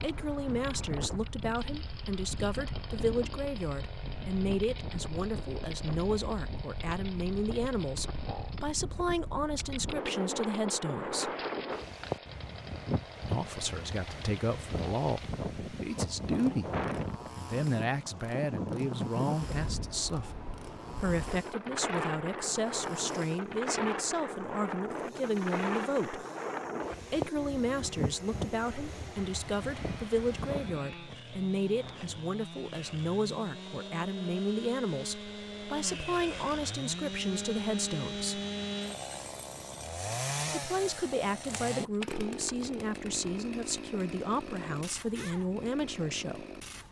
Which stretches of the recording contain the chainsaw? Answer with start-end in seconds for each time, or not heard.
0.0-46.8.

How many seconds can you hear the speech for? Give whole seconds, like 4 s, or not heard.
40 s.